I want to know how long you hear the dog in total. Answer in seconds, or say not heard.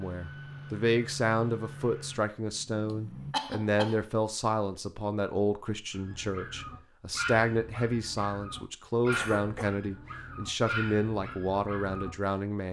6 s.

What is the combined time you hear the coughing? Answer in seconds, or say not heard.
2 s.